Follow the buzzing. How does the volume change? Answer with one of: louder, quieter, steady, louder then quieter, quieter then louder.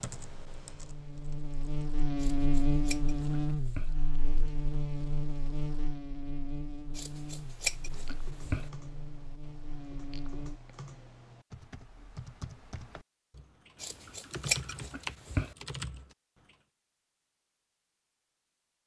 quieter.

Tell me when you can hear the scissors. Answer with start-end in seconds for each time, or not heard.
2.1-4.0, 7.0-8.7, 13.8-15.6.